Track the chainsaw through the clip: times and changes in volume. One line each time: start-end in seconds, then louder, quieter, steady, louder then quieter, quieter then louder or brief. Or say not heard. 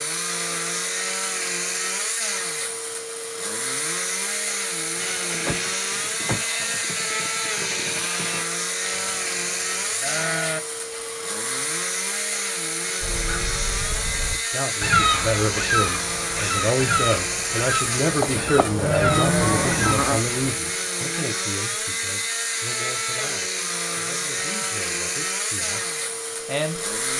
0.0-27.1 steady.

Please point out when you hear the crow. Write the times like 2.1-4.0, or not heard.
13.0-20.6.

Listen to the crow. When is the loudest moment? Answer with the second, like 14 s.
15 s.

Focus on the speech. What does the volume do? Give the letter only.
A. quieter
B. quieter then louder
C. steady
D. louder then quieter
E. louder
A.